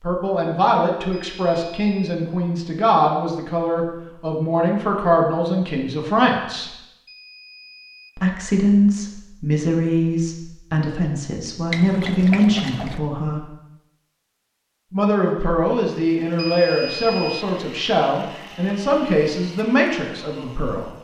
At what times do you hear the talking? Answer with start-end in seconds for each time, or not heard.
0.0-6.7, 8.2-13.5, 14.9-20.9.